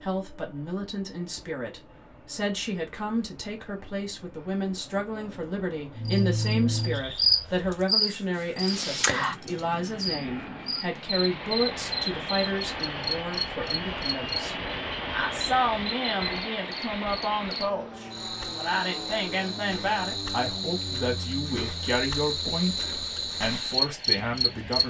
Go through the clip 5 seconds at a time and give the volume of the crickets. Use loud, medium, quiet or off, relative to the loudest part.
off, loud, medium, medium, loud.